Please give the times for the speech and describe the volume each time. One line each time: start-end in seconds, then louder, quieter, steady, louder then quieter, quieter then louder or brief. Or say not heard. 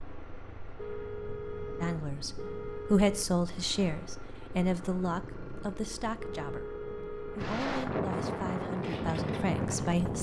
1.8-10.1 quieter.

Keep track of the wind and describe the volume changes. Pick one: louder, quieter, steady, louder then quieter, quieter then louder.
louder.